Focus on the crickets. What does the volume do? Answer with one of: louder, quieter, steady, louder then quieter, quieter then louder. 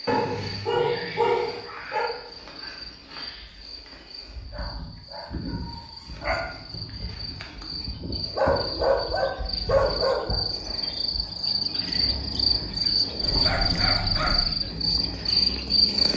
louder.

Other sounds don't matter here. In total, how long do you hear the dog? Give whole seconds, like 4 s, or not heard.
7 s.